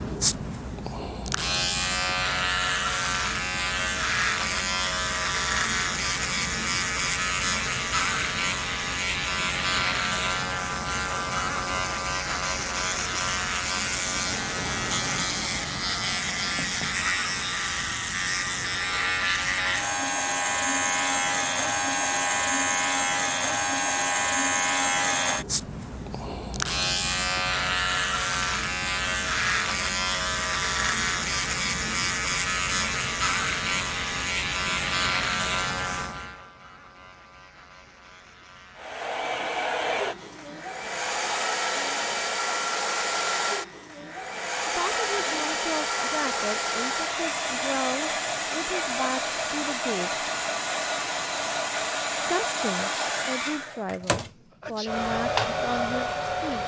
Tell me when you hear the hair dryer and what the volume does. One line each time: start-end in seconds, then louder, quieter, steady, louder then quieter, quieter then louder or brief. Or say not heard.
38.8-56.6 steady.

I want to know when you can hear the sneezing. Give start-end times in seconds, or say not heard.
54.5-55.0.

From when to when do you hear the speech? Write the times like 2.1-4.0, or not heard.
44.6-50.2, 52.1-56.6.